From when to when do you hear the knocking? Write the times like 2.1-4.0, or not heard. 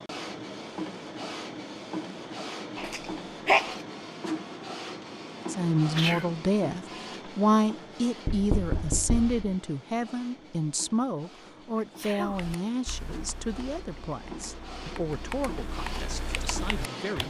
8.2-9.4.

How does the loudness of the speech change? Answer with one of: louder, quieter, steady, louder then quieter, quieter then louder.
quieter.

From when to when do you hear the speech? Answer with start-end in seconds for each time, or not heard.
5.5-17.2.